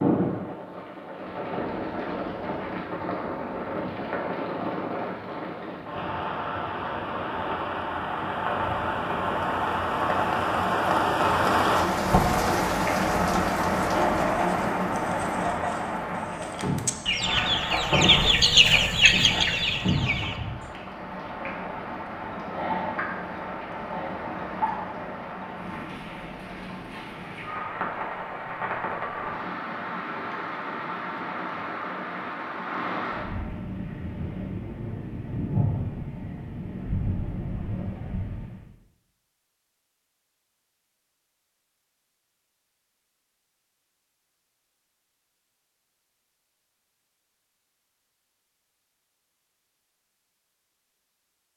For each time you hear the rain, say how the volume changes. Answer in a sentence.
You can hear the rain from 0.0 to 38.6 s, getting louder then quieter.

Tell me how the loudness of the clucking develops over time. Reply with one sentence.
The volume of the clucking goes up.